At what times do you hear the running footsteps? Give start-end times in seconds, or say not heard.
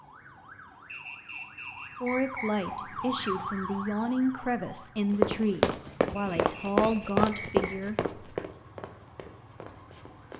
5.1-10.3.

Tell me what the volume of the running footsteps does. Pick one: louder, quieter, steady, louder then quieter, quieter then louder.
quieter.